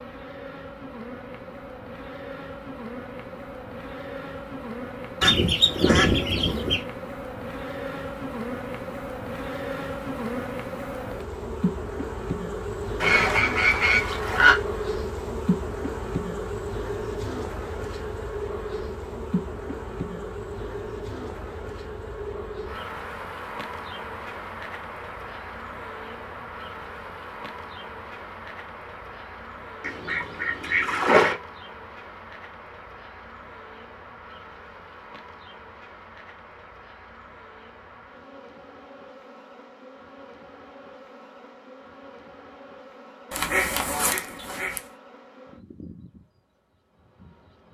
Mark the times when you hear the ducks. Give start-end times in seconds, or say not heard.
5.2-6.8, 13.0-14.6, 29.8-31.4, 43.3-44.8.